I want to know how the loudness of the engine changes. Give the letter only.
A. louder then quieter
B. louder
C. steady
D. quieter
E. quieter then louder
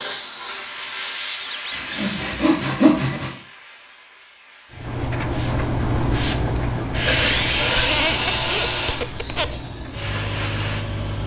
D.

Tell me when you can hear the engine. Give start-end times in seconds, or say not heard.
4.7-11.2.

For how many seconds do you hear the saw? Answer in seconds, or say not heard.
4 s.